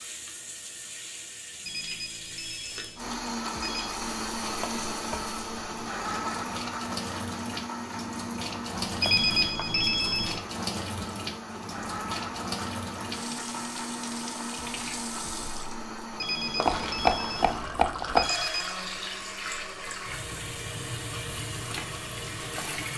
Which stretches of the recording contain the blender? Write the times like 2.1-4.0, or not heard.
3.0-22.9.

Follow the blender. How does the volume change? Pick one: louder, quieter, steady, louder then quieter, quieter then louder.
quieter.